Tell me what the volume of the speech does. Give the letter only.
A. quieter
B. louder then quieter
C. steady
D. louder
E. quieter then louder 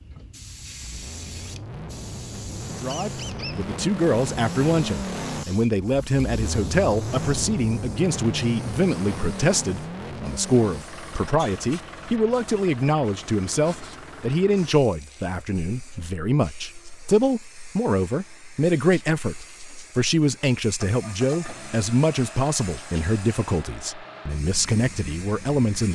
C.